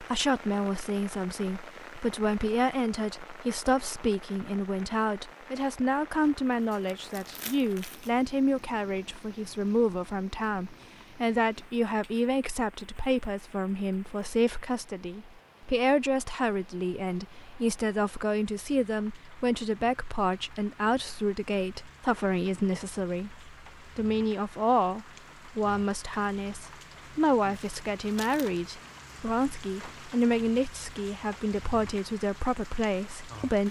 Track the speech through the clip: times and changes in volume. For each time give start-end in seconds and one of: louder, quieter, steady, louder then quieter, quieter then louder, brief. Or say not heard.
0.0-33.6 steady.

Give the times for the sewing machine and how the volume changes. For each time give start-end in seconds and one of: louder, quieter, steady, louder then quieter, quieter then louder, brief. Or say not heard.
not heard.